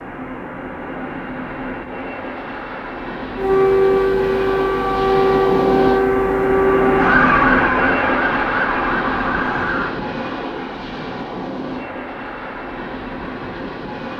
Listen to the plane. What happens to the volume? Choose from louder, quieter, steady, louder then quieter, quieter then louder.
louder then quieter.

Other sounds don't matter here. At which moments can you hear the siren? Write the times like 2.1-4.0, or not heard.
3.4-9.9.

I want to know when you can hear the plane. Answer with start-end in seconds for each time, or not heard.
0.0-14.1.